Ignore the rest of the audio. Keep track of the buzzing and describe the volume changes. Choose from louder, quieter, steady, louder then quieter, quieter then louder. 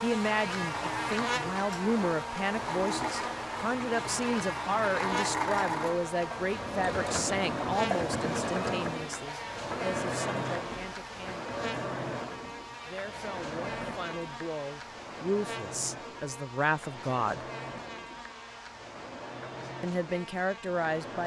quieter.